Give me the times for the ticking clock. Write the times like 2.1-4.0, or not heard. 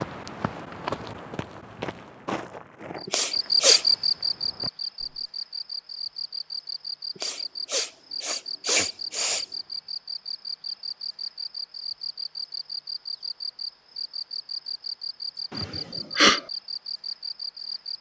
not heard.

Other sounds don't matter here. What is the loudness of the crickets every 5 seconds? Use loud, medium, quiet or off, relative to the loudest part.
loud, medium, medium, medium.